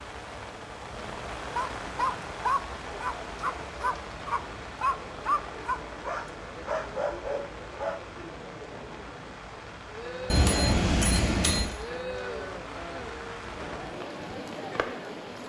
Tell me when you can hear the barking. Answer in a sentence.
You can hear the barking from 1.6 to 8.0 s.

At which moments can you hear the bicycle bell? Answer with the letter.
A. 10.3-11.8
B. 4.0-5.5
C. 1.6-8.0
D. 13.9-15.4
A.